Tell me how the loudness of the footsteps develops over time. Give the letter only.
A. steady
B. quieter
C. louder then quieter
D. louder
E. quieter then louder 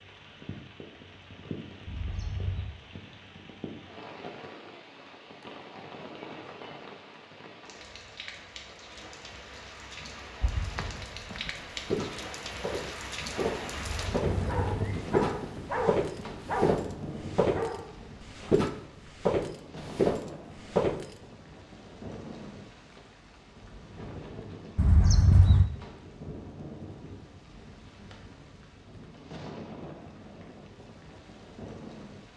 D.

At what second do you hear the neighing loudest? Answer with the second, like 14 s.
25 s.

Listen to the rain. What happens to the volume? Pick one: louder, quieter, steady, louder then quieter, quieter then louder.
louder then quieter.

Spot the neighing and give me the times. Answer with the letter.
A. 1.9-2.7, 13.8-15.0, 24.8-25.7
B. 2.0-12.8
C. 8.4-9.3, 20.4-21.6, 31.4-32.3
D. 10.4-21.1
A.